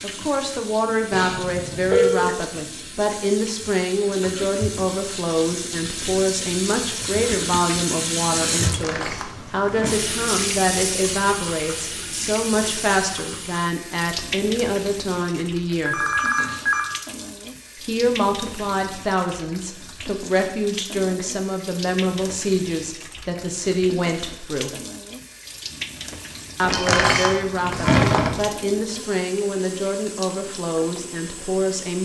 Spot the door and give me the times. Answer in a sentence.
You can hear the door from 8.6 to 9.9 s and from 26.6 to 28.5 s.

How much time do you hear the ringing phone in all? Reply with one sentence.
You can hear the ringing phone for 3 seconds altogether.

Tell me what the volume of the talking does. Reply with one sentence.
The loudness of the talking stays about the same.